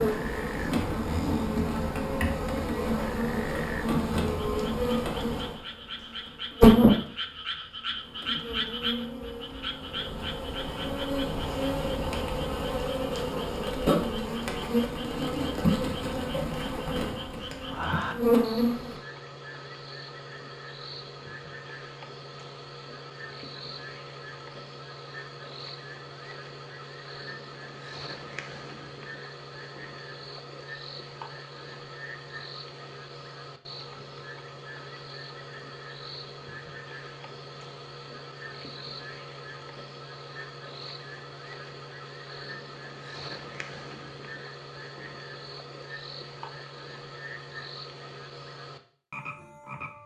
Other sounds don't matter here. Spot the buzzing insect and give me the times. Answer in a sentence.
The buzzing insect can be heard from 0.0 to 18.9 s.